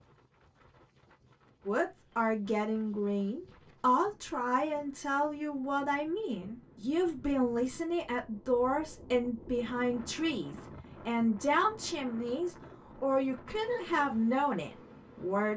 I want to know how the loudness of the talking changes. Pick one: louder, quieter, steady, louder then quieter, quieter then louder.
steady.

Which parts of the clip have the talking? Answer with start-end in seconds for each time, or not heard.
1.6-15.5.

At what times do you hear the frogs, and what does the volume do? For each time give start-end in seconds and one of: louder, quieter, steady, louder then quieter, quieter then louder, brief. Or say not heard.
not heard.